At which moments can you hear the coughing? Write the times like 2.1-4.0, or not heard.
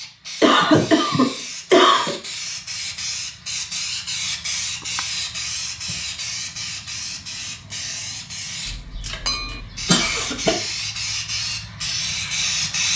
0.4-2.1, 8.7-10.6.